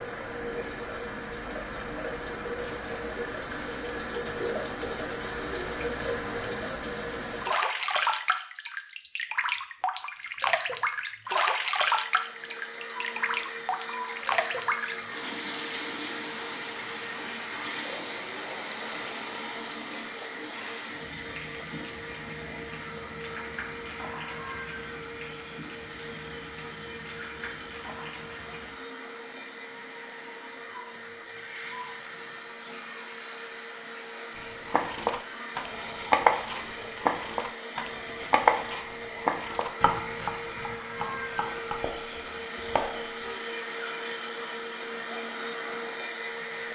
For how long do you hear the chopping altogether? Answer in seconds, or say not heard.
9 s.